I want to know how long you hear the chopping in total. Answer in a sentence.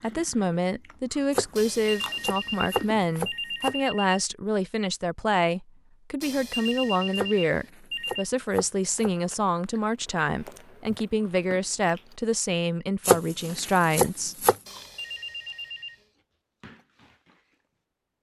The chopping can be heard for 6 seconds in total.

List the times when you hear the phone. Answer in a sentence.
You can hear the phone from 1.6 to 4.2 s, from 6.2 to 8.2 s and from 14.7 to 16.1 s.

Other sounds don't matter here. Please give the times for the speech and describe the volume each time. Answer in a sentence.
You can hear the speech from 0.0 to 14.4 s, at a steady volume.